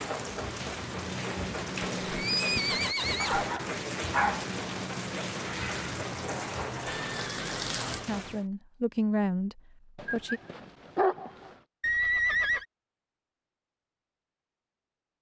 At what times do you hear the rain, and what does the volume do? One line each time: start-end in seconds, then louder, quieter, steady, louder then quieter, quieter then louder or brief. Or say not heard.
0.0-8.4 steady.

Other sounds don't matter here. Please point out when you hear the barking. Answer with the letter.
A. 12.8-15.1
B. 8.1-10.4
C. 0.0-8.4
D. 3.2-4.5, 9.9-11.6
D.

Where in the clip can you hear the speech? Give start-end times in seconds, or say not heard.
8.1-10.4.